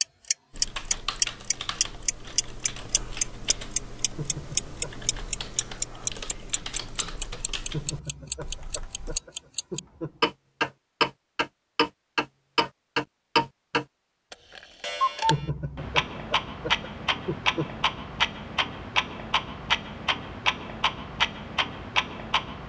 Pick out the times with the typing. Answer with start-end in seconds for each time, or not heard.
0.5-9.2.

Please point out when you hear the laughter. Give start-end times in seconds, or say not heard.
4.1-5.0, 7.7-10.3, 15.2-17.9.